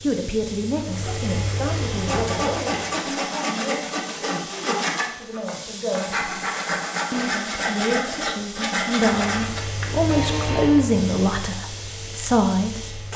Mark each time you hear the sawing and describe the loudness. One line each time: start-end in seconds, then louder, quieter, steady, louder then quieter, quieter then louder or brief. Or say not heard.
1.9-10.8 steady.